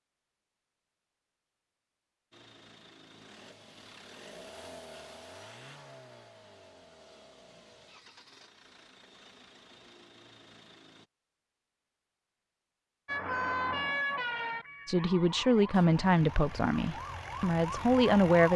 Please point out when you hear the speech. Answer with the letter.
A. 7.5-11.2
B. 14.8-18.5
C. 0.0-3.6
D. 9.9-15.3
B.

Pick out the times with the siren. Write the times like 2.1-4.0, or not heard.
13.1-18.5.